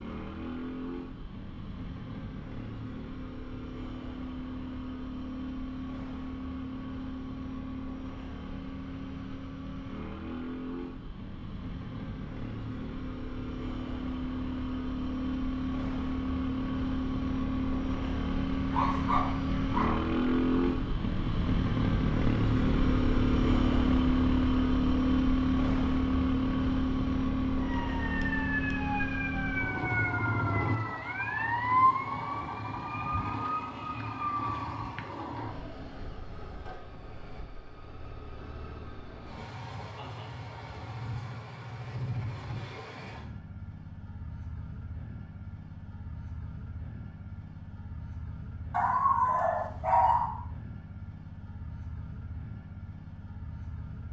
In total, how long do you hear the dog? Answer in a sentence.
The dog can be heard for 3 seconds in total.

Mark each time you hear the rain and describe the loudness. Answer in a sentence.
You can't hear the rain here.